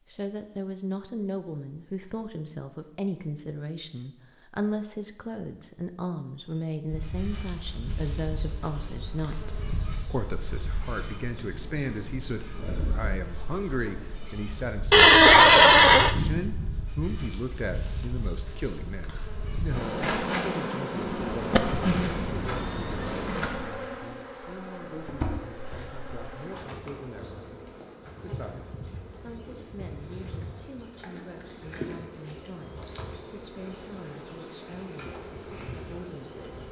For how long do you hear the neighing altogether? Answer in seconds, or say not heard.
3 s.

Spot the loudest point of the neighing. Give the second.
15 s.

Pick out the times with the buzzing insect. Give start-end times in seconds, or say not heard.
6.8-36.6.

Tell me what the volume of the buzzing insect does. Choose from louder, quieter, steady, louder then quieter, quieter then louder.
louder then quieter.